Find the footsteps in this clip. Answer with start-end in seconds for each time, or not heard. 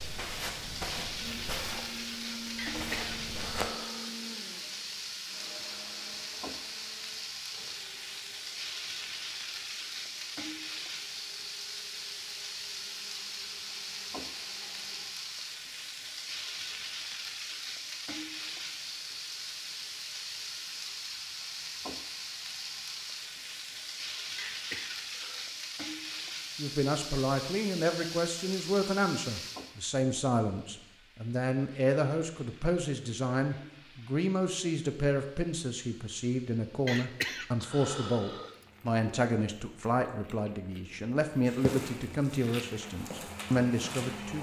0.0-3.7, 41.6-44.3.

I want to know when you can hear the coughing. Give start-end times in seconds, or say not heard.
2.5-4.1, 24.4-25.4, 36.9-38.5.